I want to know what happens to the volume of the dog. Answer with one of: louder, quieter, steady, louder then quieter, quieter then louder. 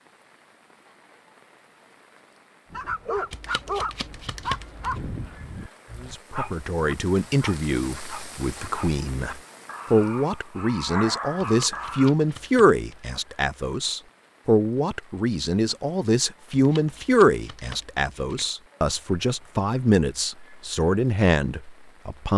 quieter then louder.